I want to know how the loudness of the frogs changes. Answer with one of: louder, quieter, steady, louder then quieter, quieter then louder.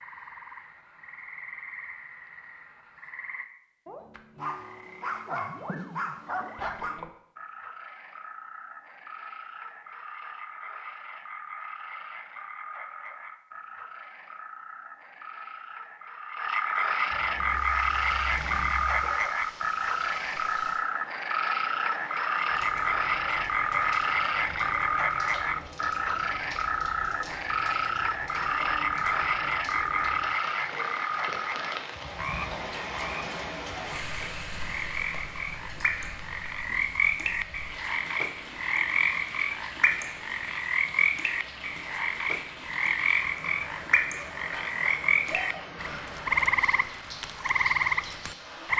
louder.